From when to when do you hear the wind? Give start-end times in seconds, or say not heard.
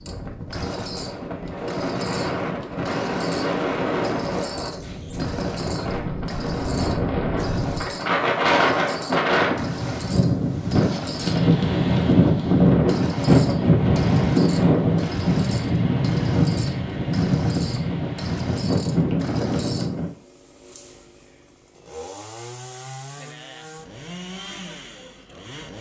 0.0-20.1.